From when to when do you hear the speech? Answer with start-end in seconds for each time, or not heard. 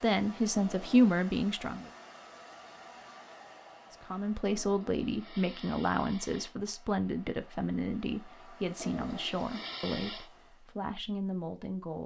0.0-1.9, 3.9-12.0.